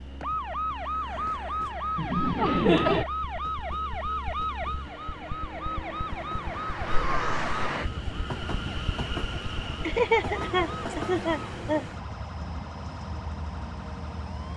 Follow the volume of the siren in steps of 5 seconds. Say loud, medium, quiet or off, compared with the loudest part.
loud, loud, quiet.